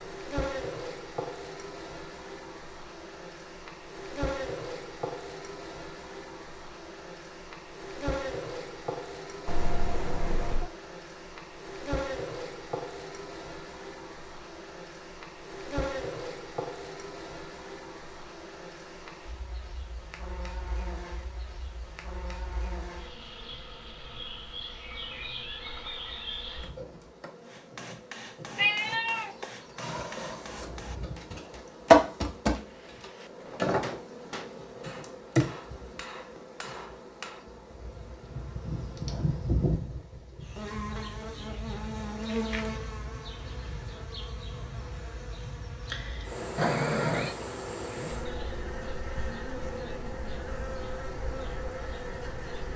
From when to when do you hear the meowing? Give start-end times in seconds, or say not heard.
9.4-10.7, 28.6-29.4, 46.5-47.4.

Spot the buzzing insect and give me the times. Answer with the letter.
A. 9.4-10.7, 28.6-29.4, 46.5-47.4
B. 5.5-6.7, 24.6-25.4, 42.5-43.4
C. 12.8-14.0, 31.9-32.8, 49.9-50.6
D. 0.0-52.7
D.